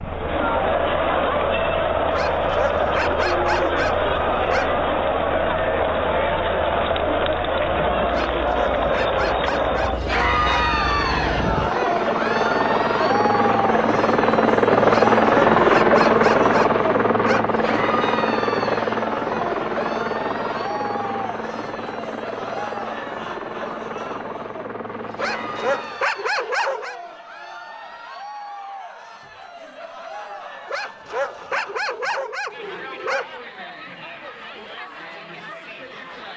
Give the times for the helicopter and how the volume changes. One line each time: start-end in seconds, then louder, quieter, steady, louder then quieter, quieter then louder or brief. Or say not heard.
0.0-26.0 louder then quieter.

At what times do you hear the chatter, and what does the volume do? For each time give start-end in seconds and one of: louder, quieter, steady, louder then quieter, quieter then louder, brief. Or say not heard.
0.0-36.3 quieter.